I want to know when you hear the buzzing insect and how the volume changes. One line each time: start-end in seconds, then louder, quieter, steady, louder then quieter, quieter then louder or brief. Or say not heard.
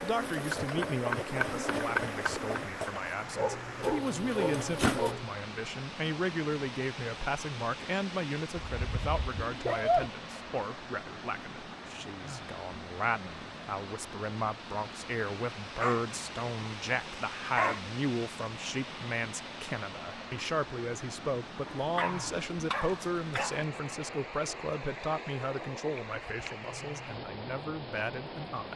0.0-5.2 quieter then louder.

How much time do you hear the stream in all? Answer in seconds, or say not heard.
29 s.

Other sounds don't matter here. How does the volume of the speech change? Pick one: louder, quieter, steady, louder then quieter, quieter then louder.
steady.